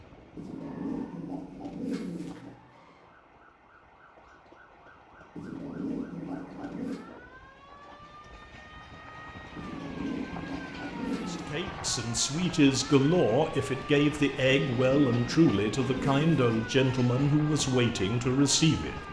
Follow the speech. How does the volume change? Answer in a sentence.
The loudness of the speech stays about the same.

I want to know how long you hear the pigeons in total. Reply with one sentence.
You can hear the pigeons for 8 seconds altogether.